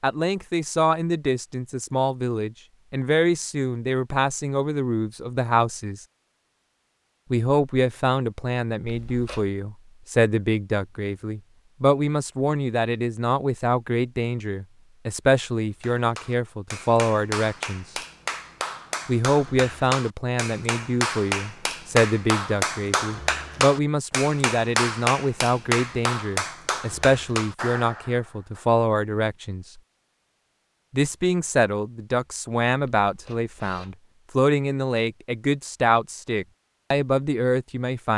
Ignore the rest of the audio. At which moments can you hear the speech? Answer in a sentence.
You can hear the speech from 0.0 to 6.0 s, from 7.3 to 17.9 s, from 19.1 to 29.8 s and from 30.9 to 38.1 s.